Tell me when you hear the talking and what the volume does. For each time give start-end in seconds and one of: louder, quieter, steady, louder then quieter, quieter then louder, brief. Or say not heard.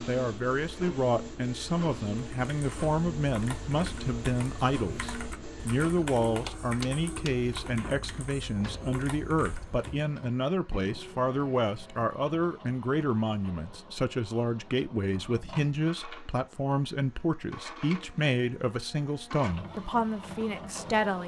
0.1-21.2 steady.